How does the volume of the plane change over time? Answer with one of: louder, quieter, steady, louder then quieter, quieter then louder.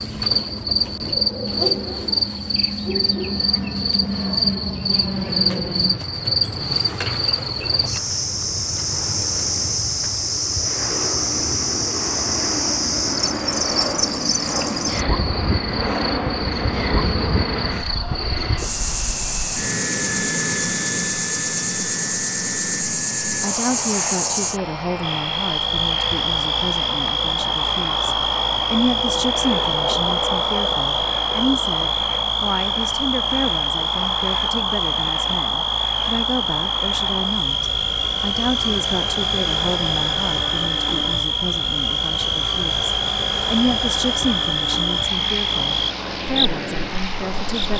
steady.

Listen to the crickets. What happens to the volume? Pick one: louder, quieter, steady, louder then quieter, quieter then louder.
steady.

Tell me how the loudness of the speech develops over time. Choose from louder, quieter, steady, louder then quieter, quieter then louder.
steady.